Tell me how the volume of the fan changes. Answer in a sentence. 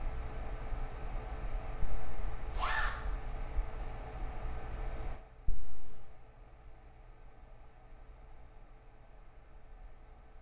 The loudness of the fan goes down.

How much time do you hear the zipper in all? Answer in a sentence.
The zipper can be heard for 2 seconds in total.